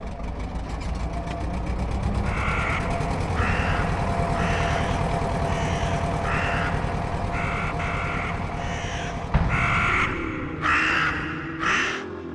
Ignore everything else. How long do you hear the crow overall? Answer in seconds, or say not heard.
10 s.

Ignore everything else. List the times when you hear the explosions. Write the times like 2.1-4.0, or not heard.
9.3-10.5.